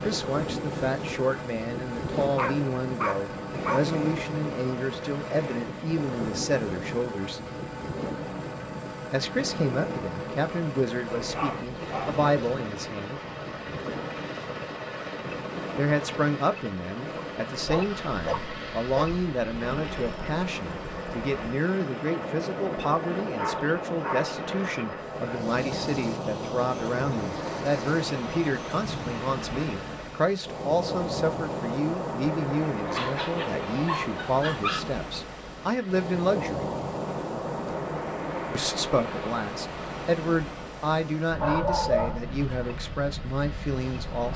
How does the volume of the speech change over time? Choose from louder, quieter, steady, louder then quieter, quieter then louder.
steady.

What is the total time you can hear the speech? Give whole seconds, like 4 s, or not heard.
38 s.